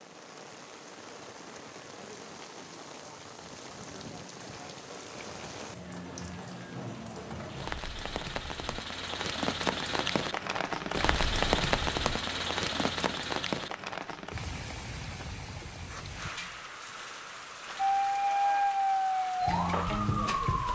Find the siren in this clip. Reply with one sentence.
You can hear the siren from 17.8 to 20.7 s.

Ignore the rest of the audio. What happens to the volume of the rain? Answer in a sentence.
The loudness of the rain goes up, then down.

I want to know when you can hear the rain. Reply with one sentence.
You can hear the rain from 0.0 to 20.7 s.